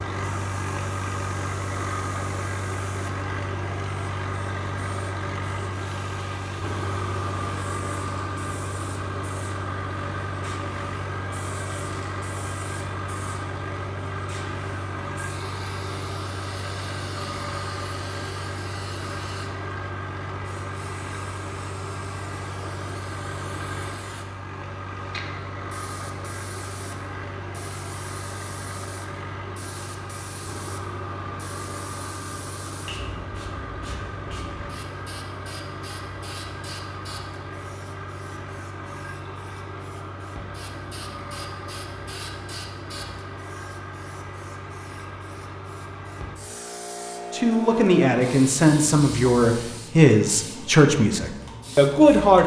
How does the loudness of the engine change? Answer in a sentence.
The volume of the engine goes down.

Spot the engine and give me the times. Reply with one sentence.
You can hear the engine from 0.0 to 46.4 s.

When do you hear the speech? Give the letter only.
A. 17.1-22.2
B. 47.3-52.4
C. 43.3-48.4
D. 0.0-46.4
B.